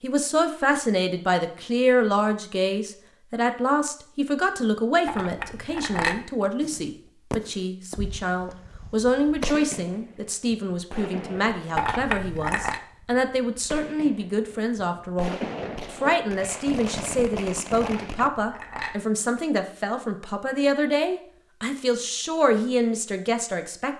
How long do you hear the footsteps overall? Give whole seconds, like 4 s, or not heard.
not heard.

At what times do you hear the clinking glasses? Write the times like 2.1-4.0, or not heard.
5.0-6.2, 11.8-12.8, 17.8-19.0.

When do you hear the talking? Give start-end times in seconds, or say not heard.
0.0-23.9.